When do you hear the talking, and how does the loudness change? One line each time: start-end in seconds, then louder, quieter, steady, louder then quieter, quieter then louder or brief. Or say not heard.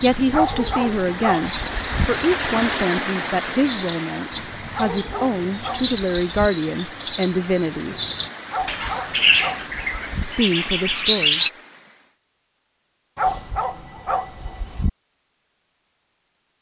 0.0-8.0 steady
10.2-11.4 brief.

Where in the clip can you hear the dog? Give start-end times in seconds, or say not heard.
0.3-2.1, 4.7-6.5, 8.5-10.2, 13.2-14.9.